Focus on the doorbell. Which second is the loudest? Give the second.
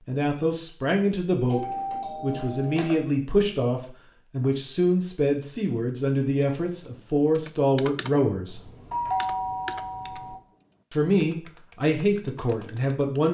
9 s.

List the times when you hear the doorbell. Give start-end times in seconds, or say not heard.
1.4-3.0, 8.4-10.3.